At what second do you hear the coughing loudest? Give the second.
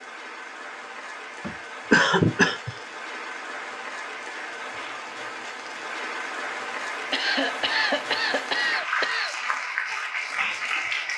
2 s.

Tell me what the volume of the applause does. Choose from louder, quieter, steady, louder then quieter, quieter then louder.
louder.